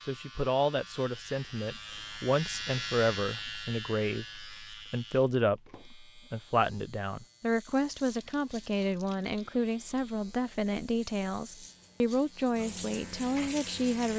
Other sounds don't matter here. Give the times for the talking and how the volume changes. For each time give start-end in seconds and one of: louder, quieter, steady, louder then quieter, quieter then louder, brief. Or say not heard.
0.1-14.1 steady.